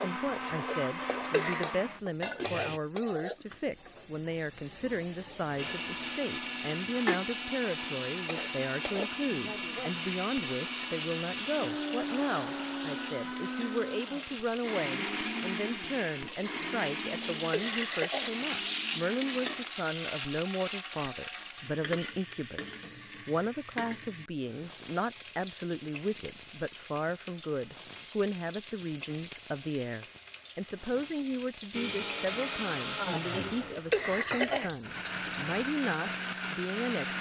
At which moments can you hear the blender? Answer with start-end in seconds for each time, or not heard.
0.0-2.8, 5.5-19.8, 31.7-37.1.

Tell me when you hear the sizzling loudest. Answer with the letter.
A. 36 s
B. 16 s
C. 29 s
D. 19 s
D.